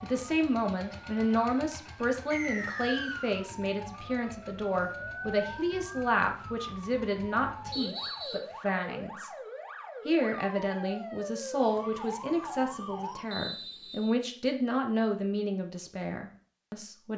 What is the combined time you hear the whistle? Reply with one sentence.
You can hear the whistle for 3 seconds altogether.